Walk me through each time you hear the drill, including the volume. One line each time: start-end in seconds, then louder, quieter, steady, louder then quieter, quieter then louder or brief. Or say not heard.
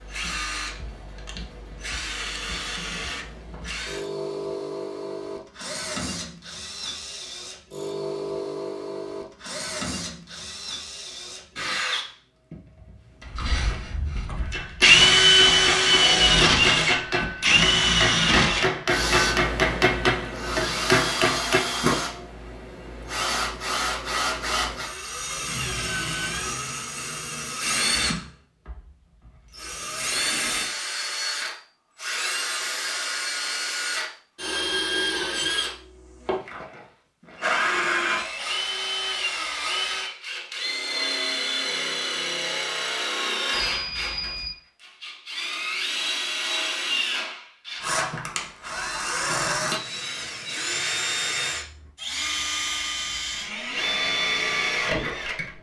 0.0-55.5 louder then quieter.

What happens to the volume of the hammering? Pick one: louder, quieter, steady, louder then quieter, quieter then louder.
louder.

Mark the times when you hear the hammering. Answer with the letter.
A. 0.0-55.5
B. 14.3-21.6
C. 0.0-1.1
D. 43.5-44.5
B.